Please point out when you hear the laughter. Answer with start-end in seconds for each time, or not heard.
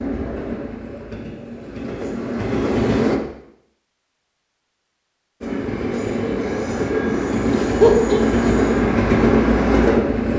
7.5-8.2.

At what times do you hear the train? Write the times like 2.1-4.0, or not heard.
0.0-3.2, 5.4-10.3.